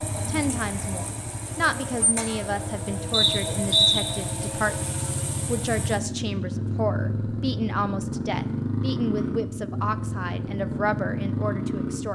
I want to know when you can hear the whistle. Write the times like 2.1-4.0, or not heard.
3.1-4.0, 9.2-9.8.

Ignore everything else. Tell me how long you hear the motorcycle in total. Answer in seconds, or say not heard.
12 s.